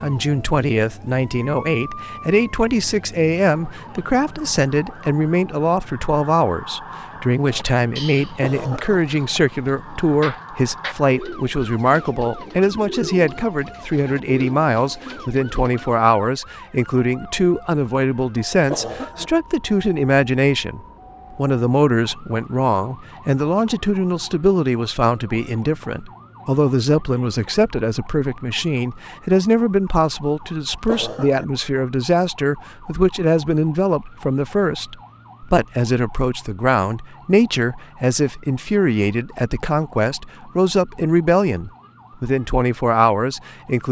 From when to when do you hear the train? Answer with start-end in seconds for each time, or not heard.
not heard.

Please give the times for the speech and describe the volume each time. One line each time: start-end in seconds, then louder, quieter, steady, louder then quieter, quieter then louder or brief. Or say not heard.
0.0-43.8 steady.